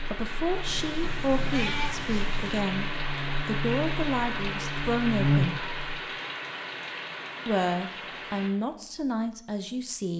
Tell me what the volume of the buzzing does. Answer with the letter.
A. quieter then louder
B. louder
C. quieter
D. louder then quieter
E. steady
B.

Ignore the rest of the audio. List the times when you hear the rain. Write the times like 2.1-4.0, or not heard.
0.0-8.5.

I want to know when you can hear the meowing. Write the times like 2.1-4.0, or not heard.
0.7-2.6.